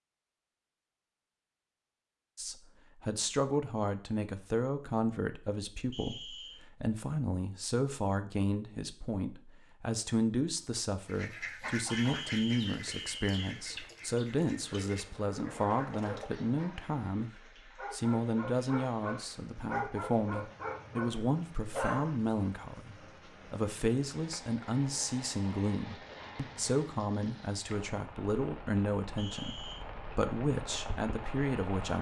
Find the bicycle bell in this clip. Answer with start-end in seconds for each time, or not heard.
not heard.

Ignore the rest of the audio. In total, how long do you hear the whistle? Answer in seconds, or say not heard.
3 s.